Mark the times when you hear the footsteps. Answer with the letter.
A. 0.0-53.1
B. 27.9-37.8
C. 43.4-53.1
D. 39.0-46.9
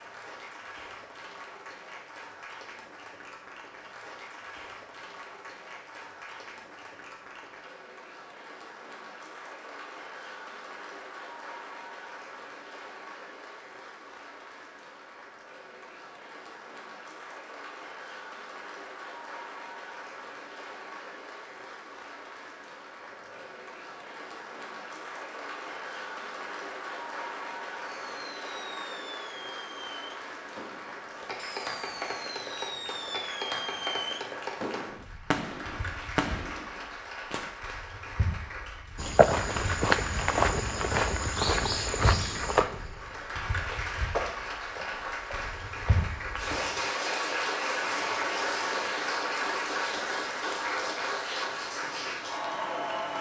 D.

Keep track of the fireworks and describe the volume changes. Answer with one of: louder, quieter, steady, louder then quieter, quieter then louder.
louder.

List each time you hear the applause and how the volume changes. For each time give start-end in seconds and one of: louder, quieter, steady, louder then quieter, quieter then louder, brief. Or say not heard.
0.0-53.1 louder.